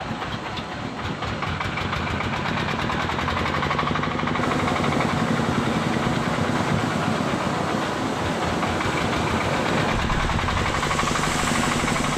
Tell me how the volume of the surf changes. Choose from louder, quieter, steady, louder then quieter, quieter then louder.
louder.